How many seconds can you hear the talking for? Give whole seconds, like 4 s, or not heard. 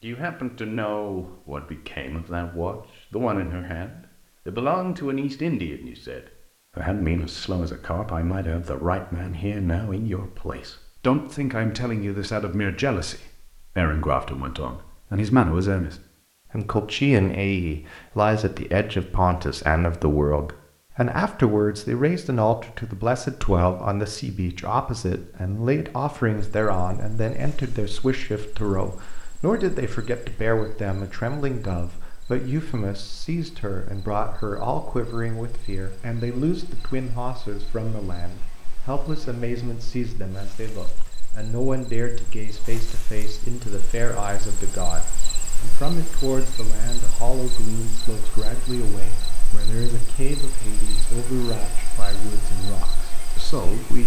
54 s.